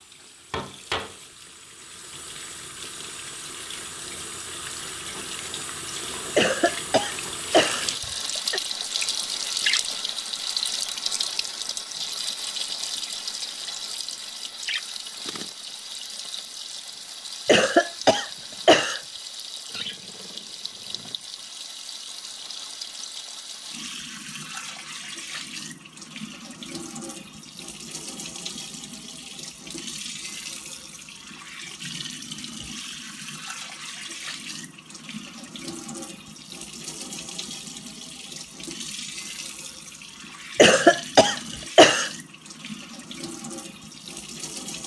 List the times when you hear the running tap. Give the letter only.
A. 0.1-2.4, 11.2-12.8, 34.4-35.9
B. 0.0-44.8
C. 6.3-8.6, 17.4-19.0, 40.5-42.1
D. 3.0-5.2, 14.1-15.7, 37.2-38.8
B.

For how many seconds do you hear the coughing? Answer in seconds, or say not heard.
5 s.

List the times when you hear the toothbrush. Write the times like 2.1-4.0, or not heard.
not heard.